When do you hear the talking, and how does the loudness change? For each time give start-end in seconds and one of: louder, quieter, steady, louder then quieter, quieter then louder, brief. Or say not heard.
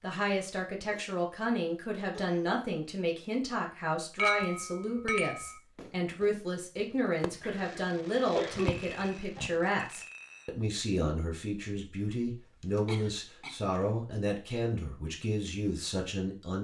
0.0-16.5 steady.